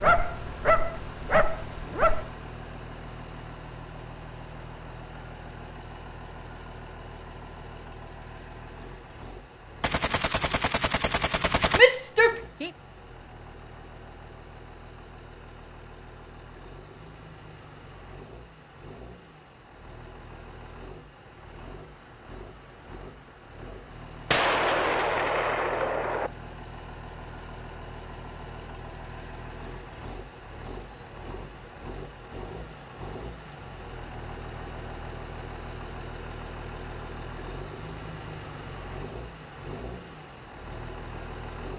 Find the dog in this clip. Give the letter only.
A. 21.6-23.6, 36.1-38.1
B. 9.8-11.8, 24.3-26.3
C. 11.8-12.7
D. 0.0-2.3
D.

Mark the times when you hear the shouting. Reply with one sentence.
You can hear the shouting from 11.8 to 12.7 s.